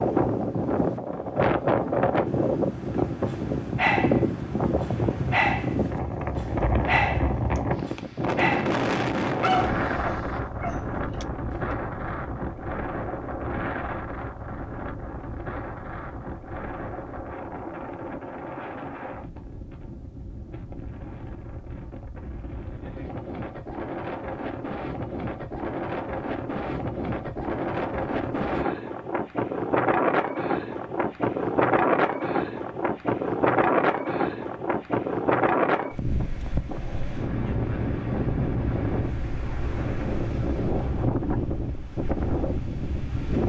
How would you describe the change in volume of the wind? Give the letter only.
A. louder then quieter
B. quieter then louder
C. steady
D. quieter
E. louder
B.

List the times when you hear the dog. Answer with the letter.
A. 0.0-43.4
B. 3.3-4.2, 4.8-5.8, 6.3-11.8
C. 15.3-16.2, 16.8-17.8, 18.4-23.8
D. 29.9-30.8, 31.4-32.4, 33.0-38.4
B.